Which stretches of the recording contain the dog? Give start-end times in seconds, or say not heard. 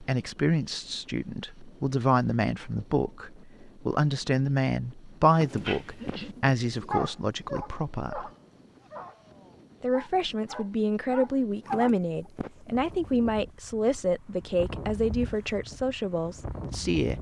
5.5-11.9.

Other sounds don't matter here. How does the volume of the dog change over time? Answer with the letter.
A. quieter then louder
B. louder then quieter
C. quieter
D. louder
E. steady
A.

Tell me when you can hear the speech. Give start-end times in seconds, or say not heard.
0.0-8.3, 9.8-17.1.